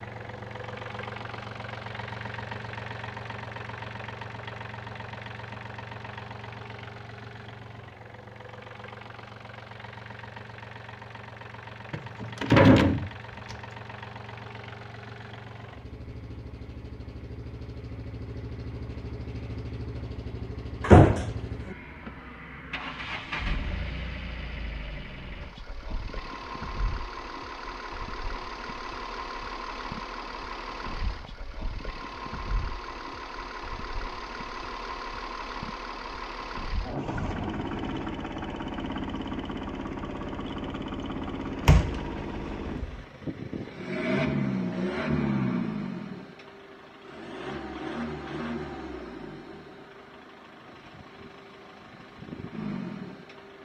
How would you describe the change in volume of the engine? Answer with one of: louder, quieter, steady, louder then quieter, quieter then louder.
louder.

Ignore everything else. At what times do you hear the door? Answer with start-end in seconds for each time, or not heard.
11.9-13.6, 20.8-21.3, 41.6-43.0.